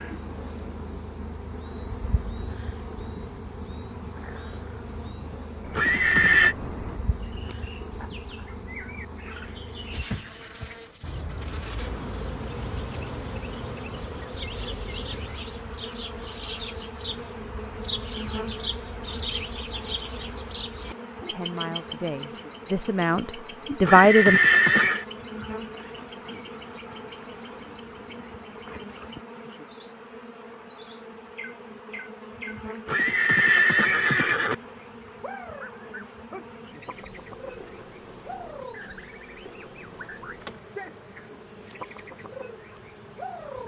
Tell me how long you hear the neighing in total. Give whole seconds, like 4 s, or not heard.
4 s.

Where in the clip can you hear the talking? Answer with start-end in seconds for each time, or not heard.
21.3-24.4.